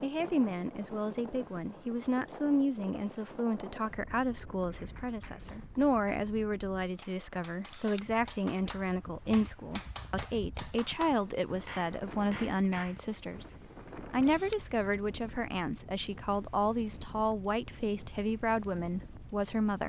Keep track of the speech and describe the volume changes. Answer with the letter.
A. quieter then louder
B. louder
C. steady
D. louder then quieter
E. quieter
C.